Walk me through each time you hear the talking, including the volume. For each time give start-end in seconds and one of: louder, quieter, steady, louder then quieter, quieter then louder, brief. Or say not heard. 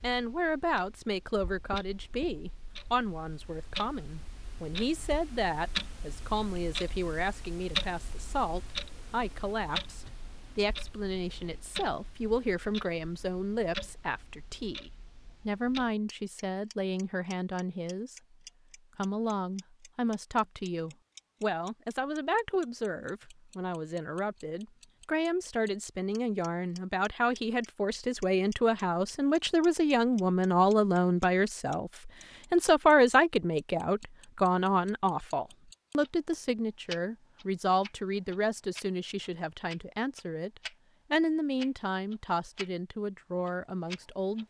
0.0-18.1 steady
18.9-44.4 louder then quieter.